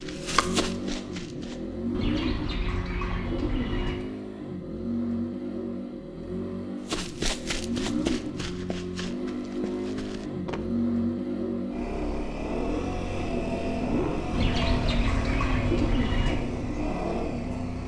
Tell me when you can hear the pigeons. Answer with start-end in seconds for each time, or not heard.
1.9-4.0, 14.3-16.4.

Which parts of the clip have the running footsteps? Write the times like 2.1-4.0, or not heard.
0.0-1.8, 6.8-10.6.